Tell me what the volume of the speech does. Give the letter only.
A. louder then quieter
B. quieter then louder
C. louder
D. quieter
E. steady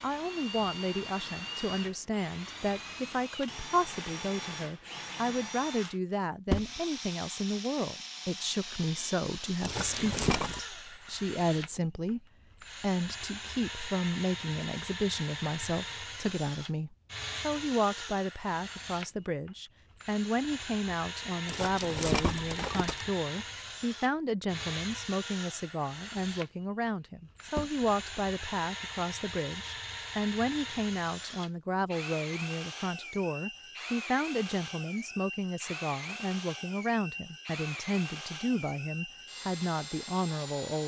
E.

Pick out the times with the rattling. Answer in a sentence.
You can hear the rattling from 9.6 to 10.6 s and from 21.4 to 23.1 s.